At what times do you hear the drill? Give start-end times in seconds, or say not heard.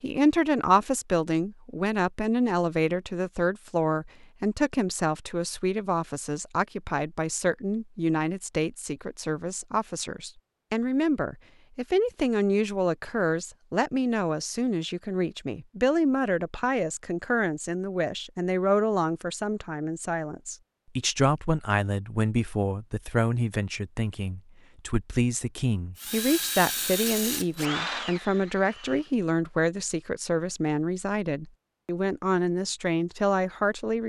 25.9-29.1.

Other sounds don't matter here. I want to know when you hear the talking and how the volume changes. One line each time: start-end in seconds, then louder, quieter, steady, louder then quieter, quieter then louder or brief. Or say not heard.
0.0-34.0 steady.